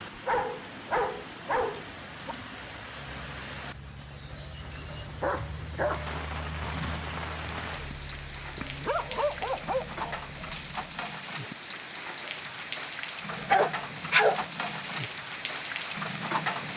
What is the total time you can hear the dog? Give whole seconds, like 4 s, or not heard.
7 s.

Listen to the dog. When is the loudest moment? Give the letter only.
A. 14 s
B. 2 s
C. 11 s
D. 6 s
A.